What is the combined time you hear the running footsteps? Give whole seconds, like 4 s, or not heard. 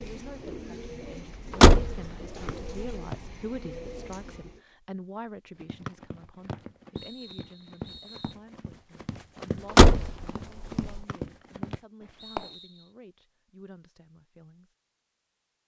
7 s.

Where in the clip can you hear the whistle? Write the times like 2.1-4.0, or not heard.
2.5-3.1, 5.8-8.3, 11.1-12.8.